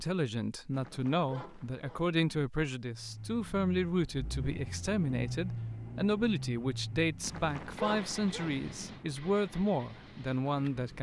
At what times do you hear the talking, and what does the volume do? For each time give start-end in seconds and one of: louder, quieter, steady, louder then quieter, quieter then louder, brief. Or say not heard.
0.0-10.9 steady.